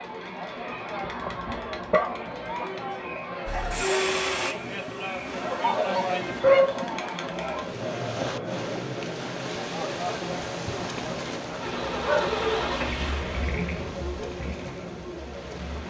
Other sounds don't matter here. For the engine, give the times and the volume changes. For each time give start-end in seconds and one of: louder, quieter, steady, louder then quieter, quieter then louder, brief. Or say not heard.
3.5-6.2 brief
11.6-15.8 quieter.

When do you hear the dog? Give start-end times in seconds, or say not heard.
1.0-2.7, 5.5-7.0, 12.0-12.7.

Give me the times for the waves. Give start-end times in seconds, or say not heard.
5.2-15.8.